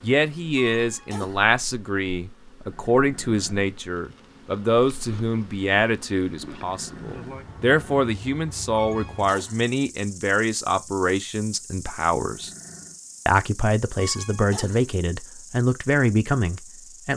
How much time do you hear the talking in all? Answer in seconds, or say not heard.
16 s.